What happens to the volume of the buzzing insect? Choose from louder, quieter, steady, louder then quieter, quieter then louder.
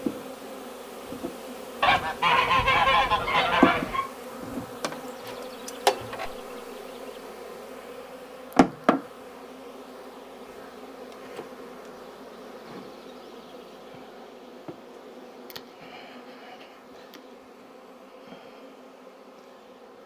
quieter.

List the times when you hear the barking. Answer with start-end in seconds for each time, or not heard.
2.2-4.0.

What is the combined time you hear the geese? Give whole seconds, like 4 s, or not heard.
2 s.